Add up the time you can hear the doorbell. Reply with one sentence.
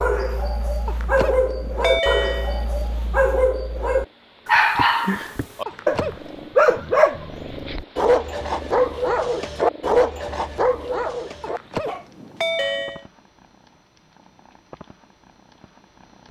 The doorbell can be heard for 4 seconds in total.